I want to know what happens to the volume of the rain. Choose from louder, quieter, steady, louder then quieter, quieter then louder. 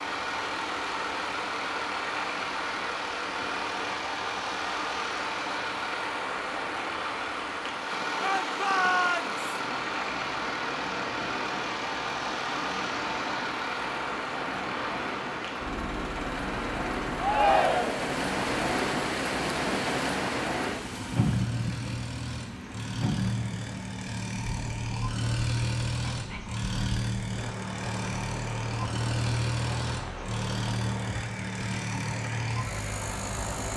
louder then quieter.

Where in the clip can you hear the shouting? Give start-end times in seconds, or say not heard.
8.2-9.4, 17.1-18.1.